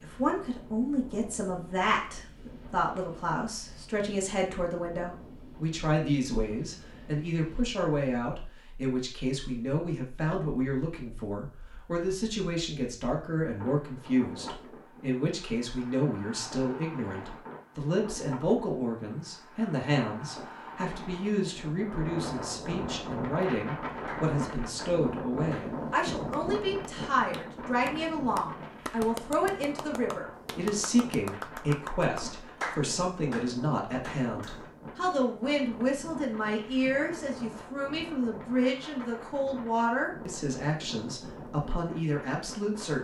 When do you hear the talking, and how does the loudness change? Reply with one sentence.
You can hear the talking from 0.0 to 42.9 s, at a steady volume.